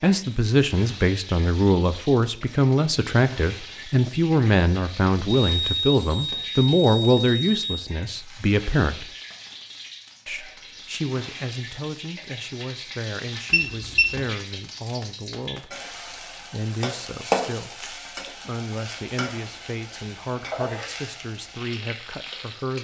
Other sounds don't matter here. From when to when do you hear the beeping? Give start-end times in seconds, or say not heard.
5.4-7.9, 13.5-14.2.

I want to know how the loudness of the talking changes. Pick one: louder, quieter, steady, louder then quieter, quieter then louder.
quieter.